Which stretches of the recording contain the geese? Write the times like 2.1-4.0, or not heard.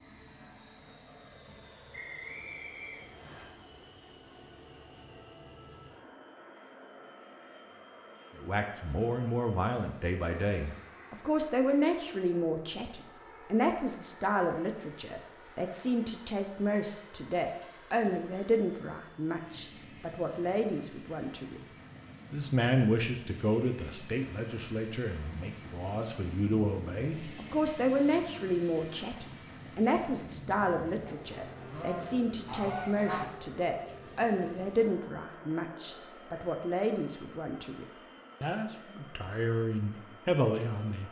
31.1-33.2.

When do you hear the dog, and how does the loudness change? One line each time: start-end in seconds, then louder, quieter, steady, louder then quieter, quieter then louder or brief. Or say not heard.
not heard.